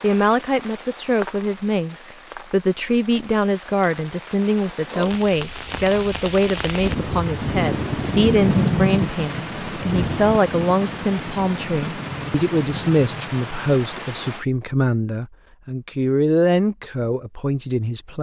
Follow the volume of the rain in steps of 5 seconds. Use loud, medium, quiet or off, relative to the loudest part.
quiet, loud, medium, off.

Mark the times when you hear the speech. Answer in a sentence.
The speech can be heard from 0.0 to 18.1 s.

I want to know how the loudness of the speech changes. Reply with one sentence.
The loudness of the speech stays about the same.